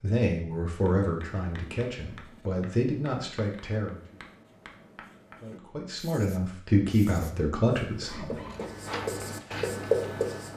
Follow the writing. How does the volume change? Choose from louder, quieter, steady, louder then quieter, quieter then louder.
louder.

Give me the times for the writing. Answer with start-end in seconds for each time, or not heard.
0.7-10.5.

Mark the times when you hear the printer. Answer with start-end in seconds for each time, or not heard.
8.1-10.5.